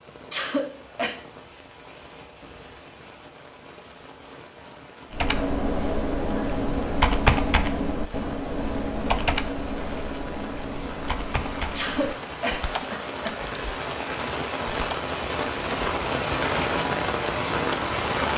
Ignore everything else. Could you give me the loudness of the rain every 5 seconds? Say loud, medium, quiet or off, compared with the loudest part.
quiet, quiet, medium, loud.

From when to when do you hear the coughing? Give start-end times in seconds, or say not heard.
0.3-1.2, 11.8-13.4.